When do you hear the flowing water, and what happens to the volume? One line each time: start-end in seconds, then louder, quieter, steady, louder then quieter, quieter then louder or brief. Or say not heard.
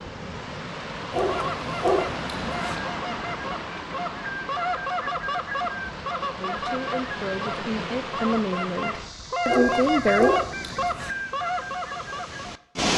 0.0-12.9 quieter.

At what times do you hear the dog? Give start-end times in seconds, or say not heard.
1.1-2.8, 9.4-11.2.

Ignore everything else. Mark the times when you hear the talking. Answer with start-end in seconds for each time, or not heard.
6.4-10.3.